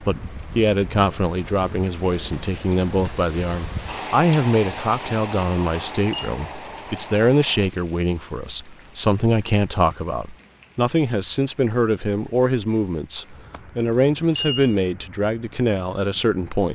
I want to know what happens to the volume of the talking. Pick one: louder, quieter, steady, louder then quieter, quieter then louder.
steady.